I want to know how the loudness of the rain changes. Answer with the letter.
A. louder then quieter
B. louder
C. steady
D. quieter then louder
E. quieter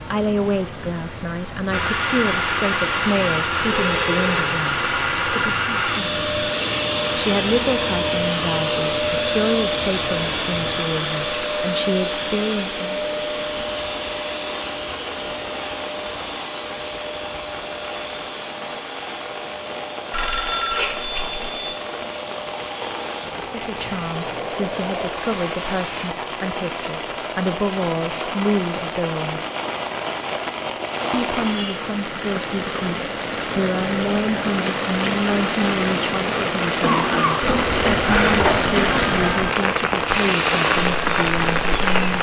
B.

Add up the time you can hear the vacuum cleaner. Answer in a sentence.
You can hear the vacuum cleaner for 26 seconds altogether.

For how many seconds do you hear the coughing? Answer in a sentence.
You can hear the coughing for 2 seconds altogether.